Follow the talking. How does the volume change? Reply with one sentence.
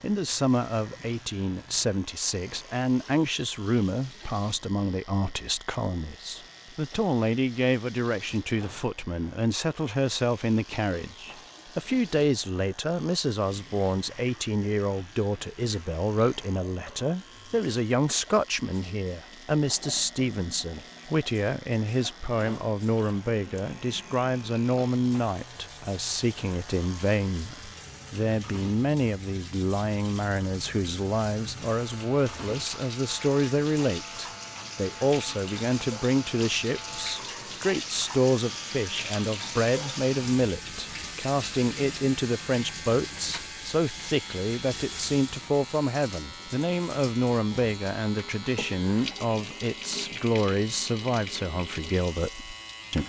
The loudness of the talking stays about the same.